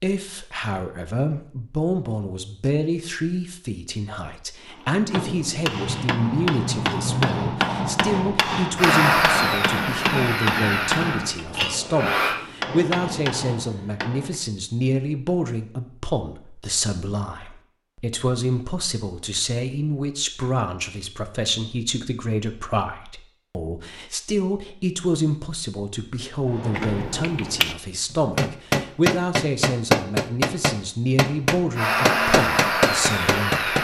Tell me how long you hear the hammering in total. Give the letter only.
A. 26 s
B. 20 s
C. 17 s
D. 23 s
C.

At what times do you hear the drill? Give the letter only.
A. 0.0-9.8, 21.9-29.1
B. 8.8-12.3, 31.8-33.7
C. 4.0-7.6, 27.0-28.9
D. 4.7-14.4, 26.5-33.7
B.